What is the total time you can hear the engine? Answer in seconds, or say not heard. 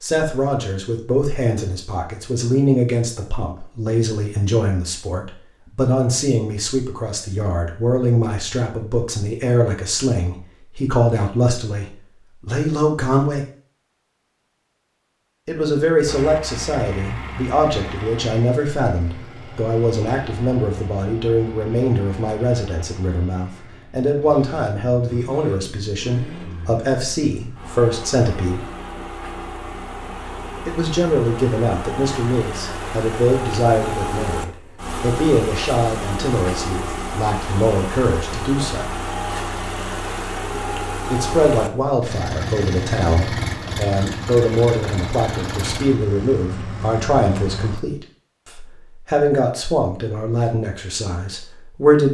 32 s.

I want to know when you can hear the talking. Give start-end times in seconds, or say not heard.
0.0-13.4, 15.4-28.6, 30.6-38.9, 41.1-52.1.